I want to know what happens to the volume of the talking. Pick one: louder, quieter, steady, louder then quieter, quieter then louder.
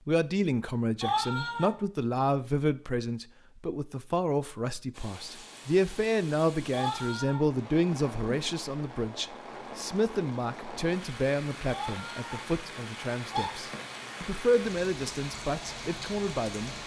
steady.